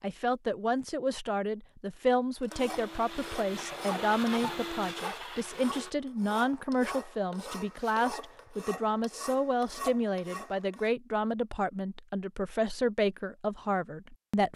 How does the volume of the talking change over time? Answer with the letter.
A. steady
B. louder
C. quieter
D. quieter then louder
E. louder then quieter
A.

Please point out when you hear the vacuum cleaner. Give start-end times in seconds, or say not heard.
2.5-6.0.